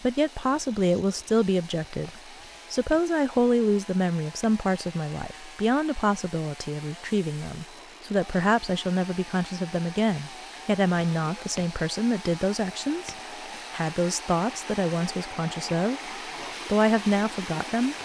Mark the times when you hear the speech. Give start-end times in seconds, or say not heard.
0.0-16.0, 16.6-17.9.